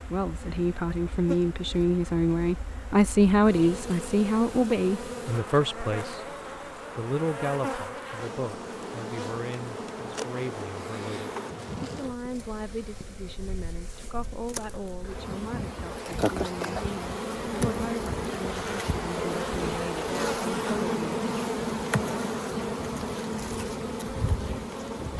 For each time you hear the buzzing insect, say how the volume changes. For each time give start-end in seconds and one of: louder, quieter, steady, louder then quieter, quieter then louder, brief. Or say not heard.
0.0-25.1 louder.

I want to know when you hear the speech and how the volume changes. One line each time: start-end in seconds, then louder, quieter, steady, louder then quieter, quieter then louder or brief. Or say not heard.
0.0-6.2 louder then quieter
7.0-20.9 steady.